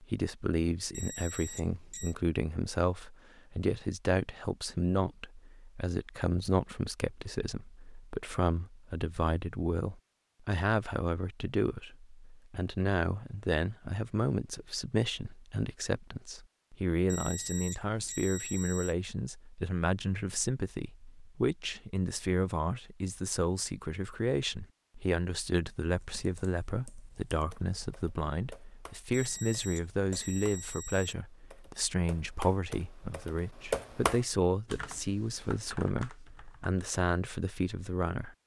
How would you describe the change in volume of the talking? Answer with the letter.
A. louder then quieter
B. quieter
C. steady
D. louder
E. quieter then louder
C.